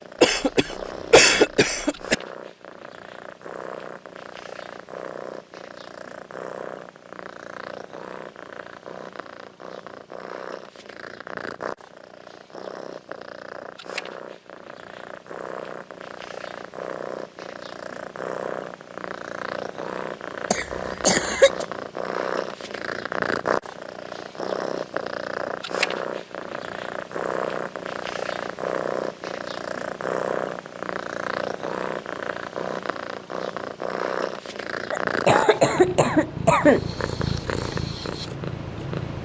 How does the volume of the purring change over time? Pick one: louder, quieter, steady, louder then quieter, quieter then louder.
louder.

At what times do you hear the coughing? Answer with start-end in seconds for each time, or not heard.
0.2-2.1, 20.5-21.6, 34.9-36.9.